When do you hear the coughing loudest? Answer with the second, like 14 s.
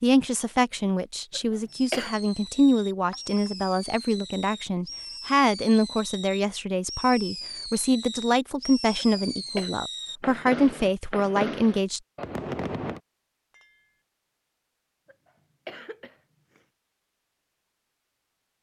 2 s.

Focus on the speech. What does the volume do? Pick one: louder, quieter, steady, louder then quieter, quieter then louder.
steady.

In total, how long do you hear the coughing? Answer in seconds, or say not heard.
3 s.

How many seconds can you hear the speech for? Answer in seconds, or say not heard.
12 s.